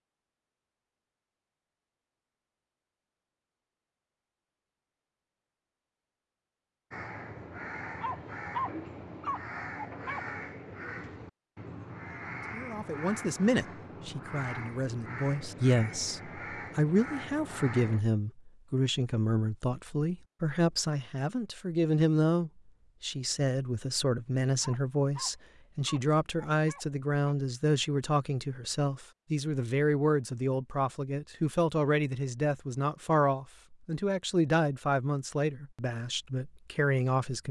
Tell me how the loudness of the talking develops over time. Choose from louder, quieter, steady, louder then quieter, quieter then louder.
steady.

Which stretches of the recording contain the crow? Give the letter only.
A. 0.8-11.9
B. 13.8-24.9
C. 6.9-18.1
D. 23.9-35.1
C.